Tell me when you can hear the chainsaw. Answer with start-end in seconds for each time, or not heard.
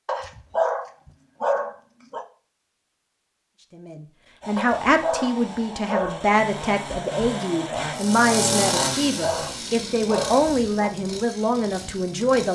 4.4-12.4.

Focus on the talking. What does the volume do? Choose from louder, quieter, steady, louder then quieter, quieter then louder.
steady.